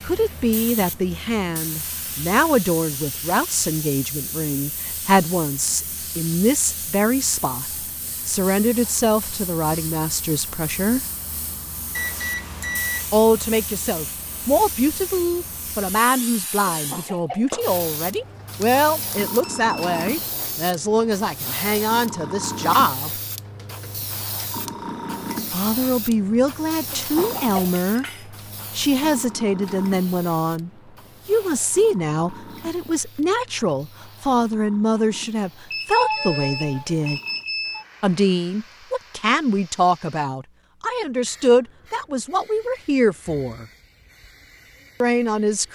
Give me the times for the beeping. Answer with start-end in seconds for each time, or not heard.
11.9-13.1, 18.6-20.0, 35.7-37.9.